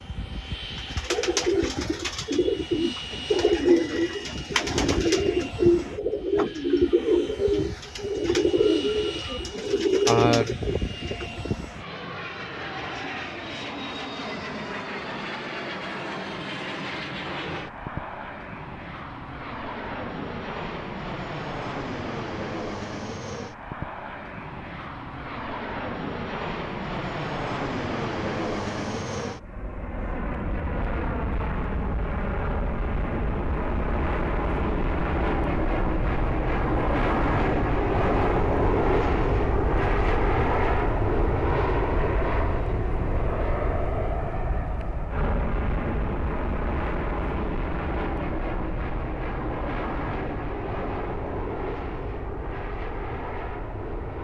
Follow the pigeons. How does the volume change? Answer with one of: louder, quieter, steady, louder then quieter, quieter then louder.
steady.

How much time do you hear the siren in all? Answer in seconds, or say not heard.
not heard.